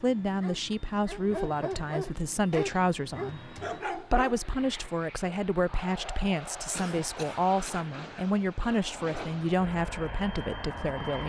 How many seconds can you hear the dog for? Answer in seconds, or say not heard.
4 s.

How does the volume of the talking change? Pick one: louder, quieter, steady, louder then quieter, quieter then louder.
steady.